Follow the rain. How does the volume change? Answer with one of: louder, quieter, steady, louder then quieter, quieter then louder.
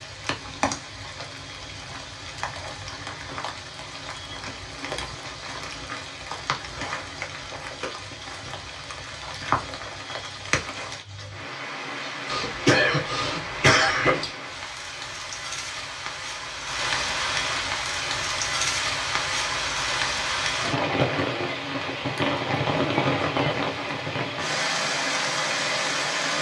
louder.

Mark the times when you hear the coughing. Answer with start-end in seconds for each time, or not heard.
12.2-14.2.